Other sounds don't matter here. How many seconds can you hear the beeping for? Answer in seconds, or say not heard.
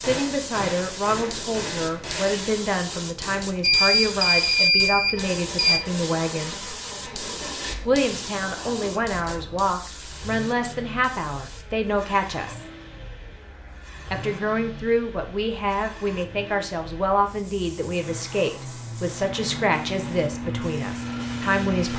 2 s.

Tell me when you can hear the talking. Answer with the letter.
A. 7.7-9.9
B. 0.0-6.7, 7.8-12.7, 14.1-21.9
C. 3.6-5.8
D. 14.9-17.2
B.